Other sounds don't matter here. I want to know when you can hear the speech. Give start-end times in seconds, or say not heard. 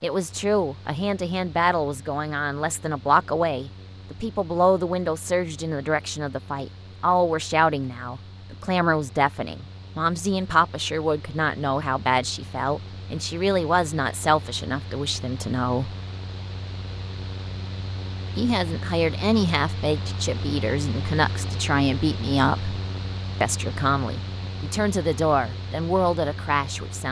0.0-15.9, 18.4-22.8, 23.4-27.0.